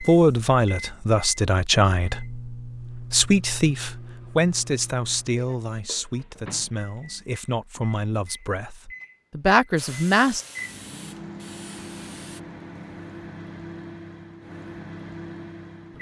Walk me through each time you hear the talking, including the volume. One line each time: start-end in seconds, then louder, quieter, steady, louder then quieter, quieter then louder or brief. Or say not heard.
0.0-10.4 quieter then louder.